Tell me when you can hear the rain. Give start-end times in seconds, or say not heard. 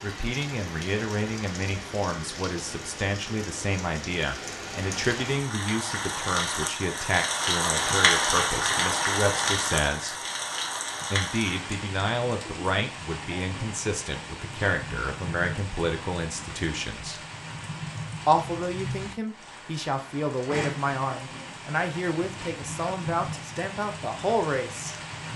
0.0-25.3.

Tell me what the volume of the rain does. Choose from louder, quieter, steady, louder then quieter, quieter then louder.
louder then quieter.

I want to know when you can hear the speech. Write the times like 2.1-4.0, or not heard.
0.0-10.2, 11.1-17.2, 18.2-24.9.